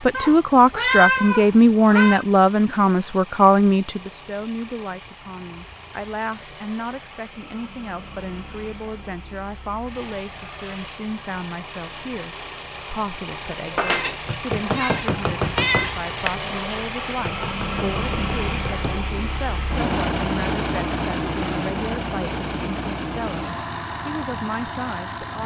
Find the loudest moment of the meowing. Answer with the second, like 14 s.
1 s.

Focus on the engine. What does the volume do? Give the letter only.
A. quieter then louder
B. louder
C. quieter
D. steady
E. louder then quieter
B.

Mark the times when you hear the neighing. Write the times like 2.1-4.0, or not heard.
not heard.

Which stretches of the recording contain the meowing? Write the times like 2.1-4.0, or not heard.
0.1-2.2, 13.8-15.9.